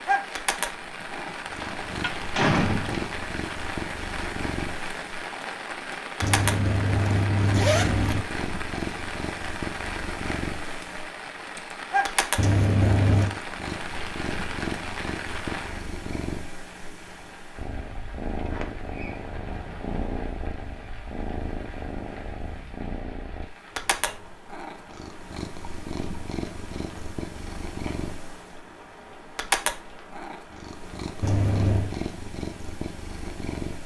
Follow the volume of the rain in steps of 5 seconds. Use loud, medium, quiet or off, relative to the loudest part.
loud, loud, loud, medium, quiet, quiet, quiet.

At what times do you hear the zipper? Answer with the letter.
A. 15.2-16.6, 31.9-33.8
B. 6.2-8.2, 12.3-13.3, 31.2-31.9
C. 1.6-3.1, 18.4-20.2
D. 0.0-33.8
B.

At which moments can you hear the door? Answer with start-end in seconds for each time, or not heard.
1.6-3.1, 18.4-20.2.